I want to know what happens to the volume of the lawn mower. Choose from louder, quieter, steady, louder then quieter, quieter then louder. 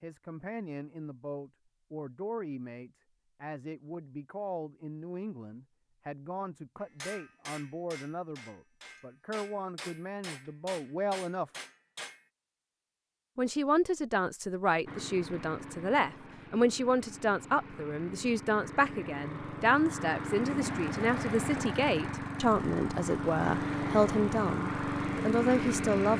louder.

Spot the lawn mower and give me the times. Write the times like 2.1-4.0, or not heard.
14.8-26.1.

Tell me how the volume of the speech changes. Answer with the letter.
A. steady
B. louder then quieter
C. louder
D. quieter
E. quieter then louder
C.